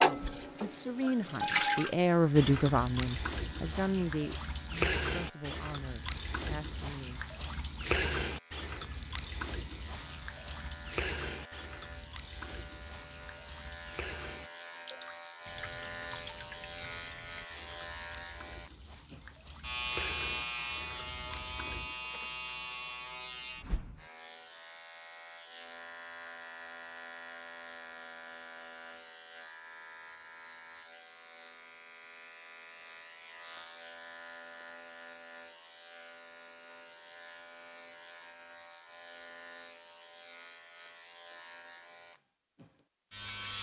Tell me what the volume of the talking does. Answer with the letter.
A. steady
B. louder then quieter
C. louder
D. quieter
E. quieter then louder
B.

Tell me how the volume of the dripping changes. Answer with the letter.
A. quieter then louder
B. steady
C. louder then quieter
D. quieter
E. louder
D.